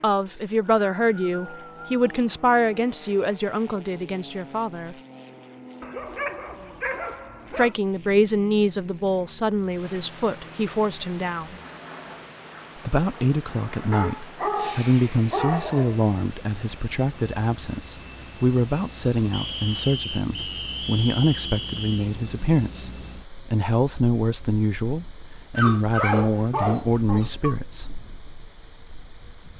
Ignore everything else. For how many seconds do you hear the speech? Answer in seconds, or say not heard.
24 s.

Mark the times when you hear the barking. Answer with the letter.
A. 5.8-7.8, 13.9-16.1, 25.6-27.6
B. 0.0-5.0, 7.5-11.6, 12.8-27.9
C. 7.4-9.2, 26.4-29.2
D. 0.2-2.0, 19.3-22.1
A.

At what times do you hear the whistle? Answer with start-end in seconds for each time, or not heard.
0.2-2.0, 19.3-22.1.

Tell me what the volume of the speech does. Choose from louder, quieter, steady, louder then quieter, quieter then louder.
steady.